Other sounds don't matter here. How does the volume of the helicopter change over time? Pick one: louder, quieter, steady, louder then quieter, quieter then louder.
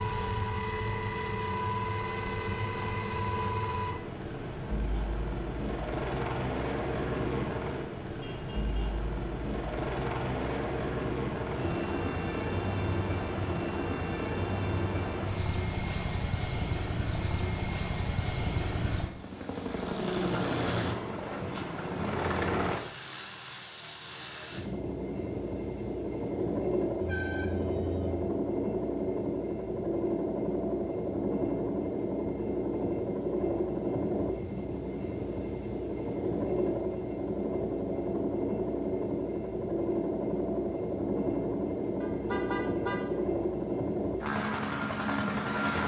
steady.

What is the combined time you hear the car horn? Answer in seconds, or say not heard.
3 s.